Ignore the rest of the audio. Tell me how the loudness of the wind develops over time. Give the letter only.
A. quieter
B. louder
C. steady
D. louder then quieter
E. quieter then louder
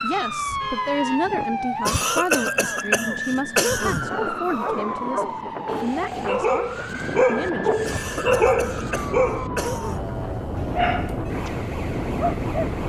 B.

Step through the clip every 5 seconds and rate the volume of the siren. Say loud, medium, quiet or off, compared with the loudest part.
loud, medium, medium.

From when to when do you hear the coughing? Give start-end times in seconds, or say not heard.
1.9-4.1, 7.8-10.1.